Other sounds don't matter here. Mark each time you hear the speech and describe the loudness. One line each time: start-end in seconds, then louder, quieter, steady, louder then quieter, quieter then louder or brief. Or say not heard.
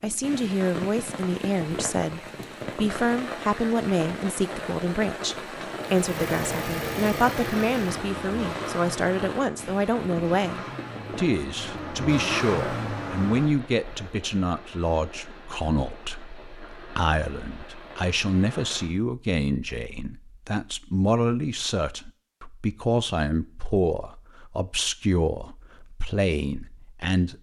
0.0-27.3 steady.